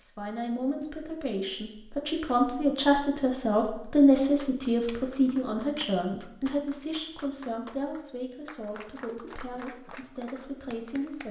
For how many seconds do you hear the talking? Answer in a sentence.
The talking can be heard for 11 seconds in total.